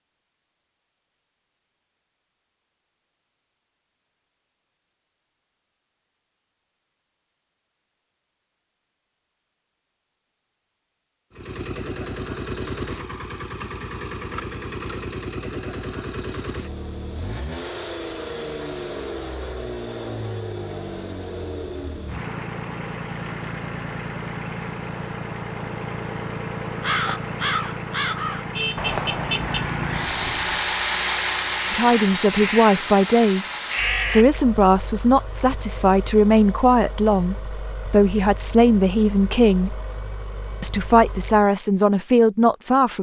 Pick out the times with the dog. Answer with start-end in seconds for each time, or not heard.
not heard.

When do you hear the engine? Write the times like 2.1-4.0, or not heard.
11.3-41.5.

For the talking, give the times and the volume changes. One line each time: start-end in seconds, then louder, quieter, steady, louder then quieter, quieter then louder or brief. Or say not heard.
31.7-33.5 brief
34.0-39.8 steady
40.6-42.9 brief.